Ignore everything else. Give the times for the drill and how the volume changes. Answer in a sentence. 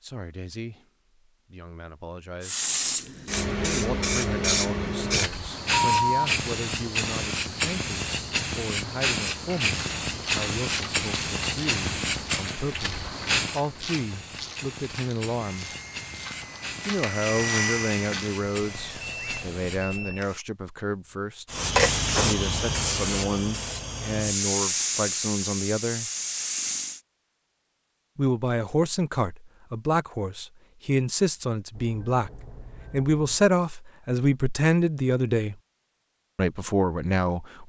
You can hear the drill from 15.3 to 20.4 s, getting louder then quieter.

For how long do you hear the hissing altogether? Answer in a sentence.
You can hear the hissing for 23 seconds altogether.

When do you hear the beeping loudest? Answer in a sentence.
The volume of the beeping peaks at 6 seconds.